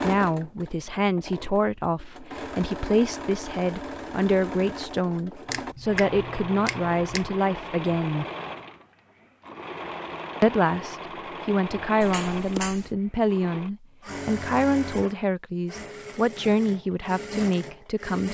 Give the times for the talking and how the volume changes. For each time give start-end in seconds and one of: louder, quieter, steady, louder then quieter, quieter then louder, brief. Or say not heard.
0.0-8.2 steady
10.4-18.3 steady.